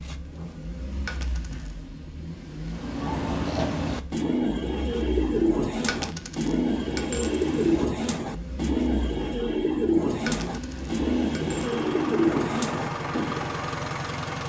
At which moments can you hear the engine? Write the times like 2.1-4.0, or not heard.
0.0-14.4.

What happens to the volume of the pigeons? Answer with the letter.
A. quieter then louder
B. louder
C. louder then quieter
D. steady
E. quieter
D.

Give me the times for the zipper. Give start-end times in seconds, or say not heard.
not heard.